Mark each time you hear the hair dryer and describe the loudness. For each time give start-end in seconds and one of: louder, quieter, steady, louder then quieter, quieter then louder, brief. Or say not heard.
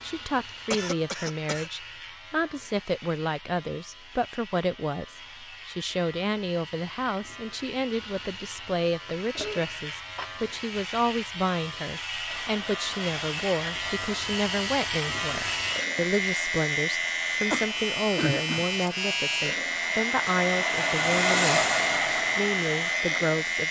12.2-23.6 louder.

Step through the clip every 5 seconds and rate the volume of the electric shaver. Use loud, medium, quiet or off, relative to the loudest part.
quiet, quiet, medium, loud, loud.